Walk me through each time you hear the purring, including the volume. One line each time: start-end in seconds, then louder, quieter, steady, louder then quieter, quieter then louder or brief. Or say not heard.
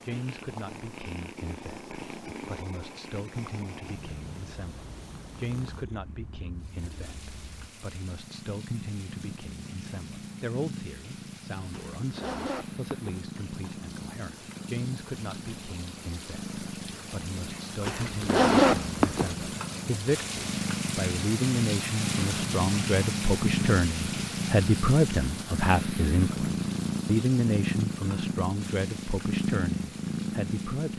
0.0-30.9 louder.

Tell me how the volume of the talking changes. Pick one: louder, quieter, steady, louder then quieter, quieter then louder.
louder.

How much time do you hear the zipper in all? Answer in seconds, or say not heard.
3 s.